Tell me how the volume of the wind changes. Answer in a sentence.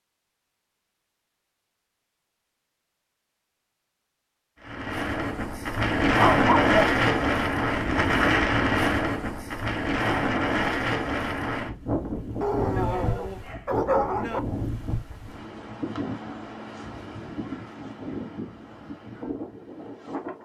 The volume of the wind goes down.